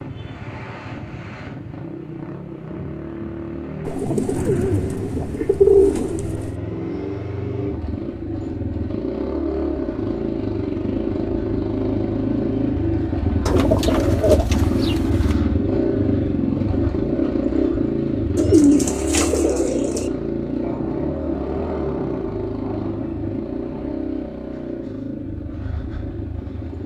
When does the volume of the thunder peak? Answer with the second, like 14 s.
4 s.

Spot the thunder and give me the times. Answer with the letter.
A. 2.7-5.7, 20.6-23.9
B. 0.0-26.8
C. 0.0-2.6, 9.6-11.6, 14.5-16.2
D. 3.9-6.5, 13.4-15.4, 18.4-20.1
A.